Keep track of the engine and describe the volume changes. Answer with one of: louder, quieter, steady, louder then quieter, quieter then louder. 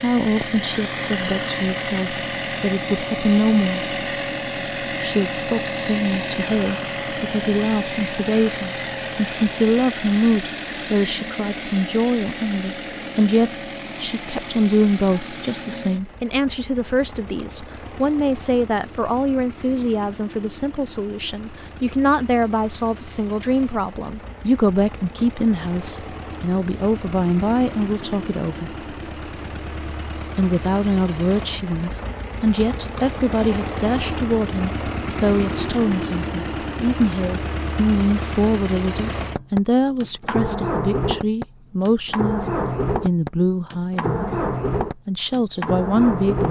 quieter then louder.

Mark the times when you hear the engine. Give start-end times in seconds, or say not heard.
0.0-46.4.